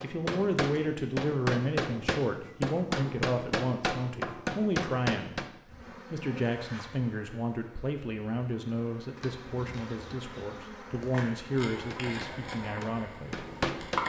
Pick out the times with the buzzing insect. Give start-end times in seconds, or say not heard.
5.7-14.0.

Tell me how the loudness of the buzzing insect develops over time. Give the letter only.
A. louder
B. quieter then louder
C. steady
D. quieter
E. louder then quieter
B.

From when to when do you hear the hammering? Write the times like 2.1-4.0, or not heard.
0.0-5.5, 11.7-14.0.